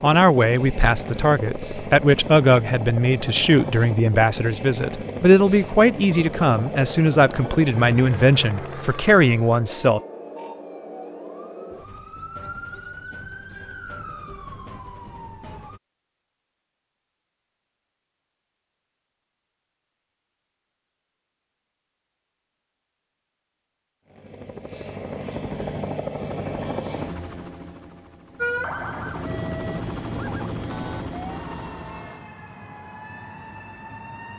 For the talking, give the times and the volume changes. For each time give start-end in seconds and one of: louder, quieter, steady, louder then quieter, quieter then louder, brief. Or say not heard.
0.0-10.0 steady.